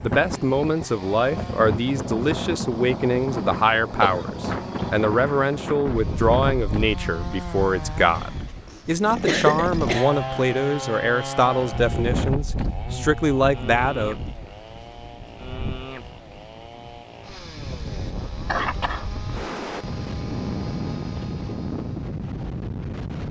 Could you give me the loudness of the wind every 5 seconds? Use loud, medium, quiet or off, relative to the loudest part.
loud, loud, loud, medium, loud.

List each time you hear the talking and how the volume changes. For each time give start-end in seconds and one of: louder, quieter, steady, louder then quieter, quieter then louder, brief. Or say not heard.
0.0-14.2 steady.